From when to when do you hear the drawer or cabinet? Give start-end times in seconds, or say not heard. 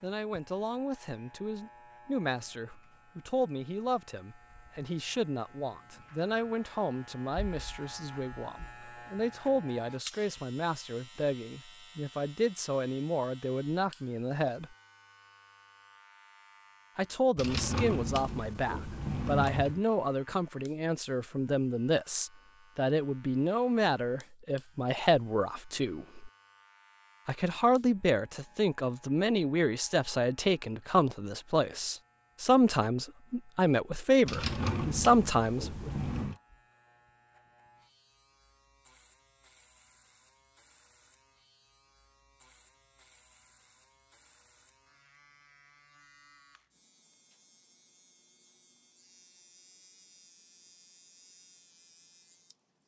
17.4-19.8, 34.2-36.4.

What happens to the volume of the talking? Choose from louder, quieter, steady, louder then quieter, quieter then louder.
louder.